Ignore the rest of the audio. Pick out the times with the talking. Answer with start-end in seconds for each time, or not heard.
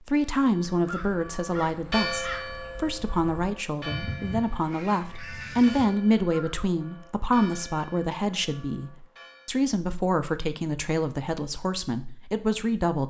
0.1-13.0.